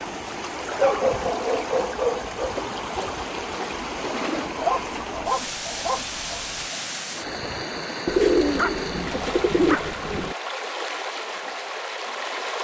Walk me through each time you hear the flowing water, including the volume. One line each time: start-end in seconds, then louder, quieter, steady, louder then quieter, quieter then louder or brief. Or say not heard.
0.0-12.6 steady.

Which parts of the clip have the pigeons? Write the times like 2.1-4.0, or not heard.
2.5-4.5, 8.1-10.3.